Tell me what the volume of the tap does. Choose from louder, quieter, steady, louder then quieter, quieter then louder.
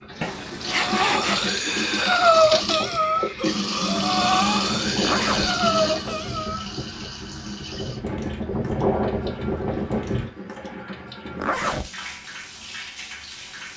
quieter.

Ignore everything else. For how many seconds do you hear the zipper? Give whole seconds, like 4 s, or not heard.
2 s.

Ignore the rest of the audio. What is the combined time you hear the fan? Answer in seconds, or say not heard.
10 s.